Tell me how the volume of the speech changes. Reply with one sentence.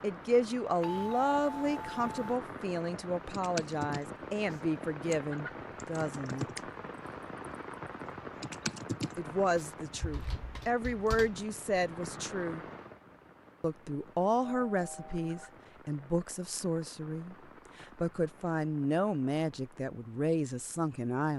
The volume of the speech stays about the same.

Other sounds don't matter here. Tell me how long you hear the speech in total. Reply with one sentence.
You can hear the speech for 18 seconds altogether.